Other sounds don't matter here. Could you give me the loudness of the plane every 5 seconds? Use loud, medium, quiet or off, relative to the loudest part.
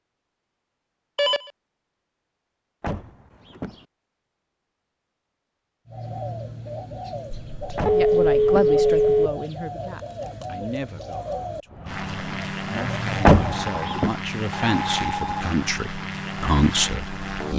off, off, loud, loud.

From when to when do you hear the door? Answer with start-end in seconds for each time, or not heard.
2.8-3.9, 7.8-8.8, 13.2-14.1.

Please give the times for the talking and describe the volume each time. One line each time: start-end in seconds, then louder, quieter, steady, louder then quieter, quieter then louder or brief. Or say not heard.
7.9-17.5 quieter then louder.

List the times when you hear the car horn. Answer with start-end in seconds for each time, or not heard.
not heard.